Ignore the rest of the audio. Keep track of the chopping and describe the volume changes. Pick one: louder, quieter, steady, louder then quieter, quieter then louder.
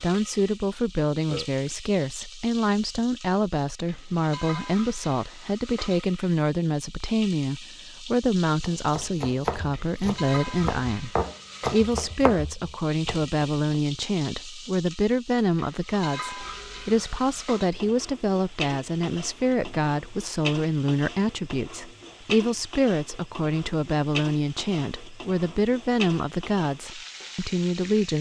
quieter then louder.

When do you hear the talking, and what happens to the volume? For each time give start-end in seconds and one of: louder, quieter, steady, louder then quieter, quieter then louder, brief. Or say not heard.
0.0-28.1 steady.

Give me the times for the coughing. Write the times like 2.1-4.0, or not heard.
not heard.